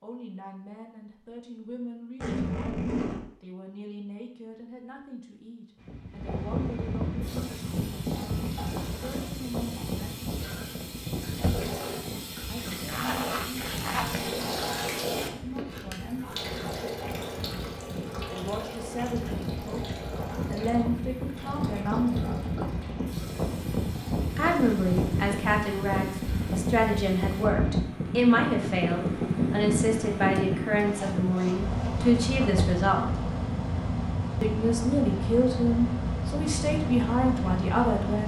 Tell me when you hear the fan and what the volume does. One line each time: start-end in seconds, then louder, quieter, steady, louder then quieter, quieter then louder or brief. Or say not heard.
5.8-38.2 quieter then louder.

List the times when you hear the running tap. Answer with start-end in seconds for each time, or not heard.
7.2-27.5.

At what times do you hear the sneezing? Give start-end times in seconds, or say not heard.
not heard.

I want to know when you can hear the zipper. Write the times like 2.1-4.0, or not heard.
2.2-3.2, 12.8-14.2, 30.9-32.5.